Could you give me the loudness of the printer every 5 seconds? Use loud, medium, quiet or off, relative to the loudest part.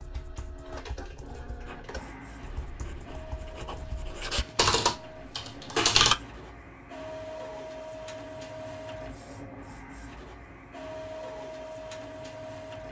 medium, loud, loud.